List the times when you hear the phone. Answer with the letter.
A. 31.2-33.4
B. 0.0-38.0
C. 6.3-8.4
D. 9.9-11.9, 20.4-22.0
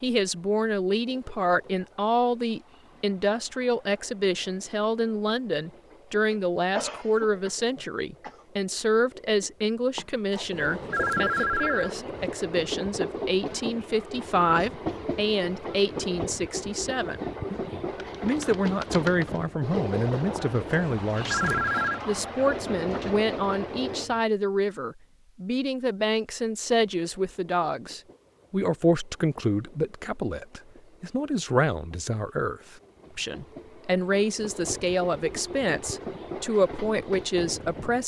D.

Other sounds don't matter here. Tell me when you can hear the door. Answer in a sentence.
The door can't be heard in this clip.